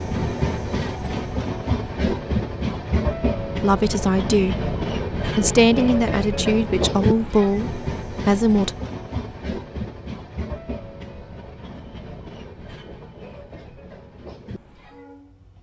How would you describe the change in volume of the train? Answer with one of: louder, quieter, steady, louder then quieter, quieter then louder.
quieter.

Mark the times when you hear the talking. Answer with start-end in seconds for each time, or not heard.
3.5-8.8.